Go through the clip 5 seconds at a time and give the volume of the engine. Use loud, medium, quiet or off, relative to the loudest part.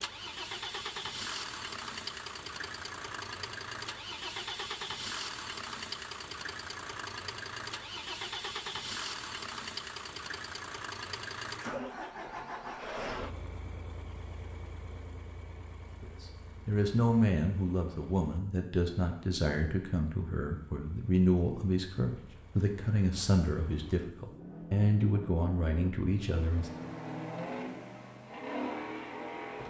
loud, loud, loud, quiet, quiet, loud.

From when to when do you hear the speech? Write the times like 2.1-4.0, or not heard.
16.0-26.7.